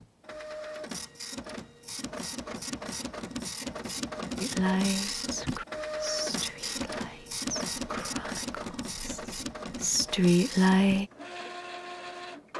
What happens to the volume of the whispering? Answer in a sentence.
The volume of the whispering goes down, then up.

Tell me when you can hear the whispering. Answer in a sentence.
You can hear the whispering from 4.3 to 11.1 s.